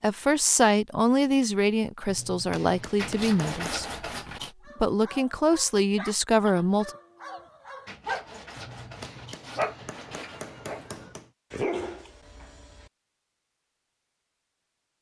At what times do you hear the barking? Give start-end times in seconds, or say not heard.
4.6-8.2, 9.2-12.9.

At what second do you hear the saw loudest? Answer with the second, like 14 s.
4 s.